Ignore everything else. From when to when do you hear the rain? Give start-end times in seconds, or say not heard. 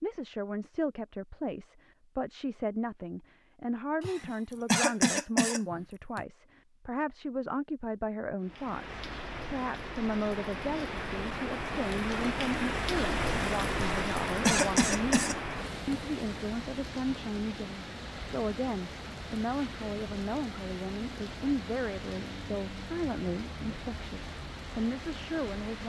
8.4-25.8.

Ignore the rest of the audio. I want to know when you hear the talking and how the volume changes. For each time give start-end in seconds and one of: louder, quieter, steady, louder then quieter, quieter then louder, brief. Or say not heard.
0.0-25.8 steady.